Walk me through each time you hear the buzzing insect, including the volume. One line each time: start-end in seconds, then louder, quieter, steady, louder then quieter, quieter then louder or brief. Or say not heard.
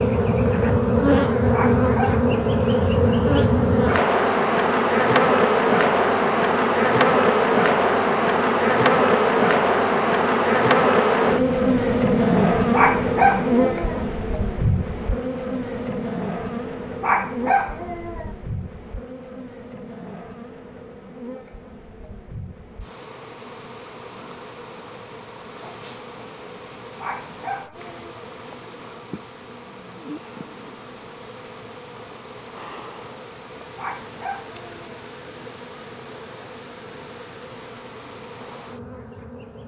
0.0-39.6 quieter.